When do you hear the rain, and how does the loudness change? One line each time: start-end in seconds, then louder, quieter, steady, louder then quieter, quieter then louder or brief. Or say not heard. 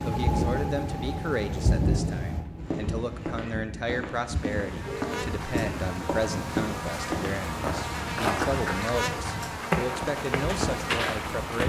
0.0-11.6 quieter.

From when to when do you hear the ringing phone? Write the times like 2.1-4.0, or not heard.
4.8-5.3.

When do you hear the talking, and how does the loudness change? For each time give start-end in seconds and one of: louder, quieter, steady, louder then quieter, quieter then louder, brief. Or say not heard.
0.1-11.6 steady.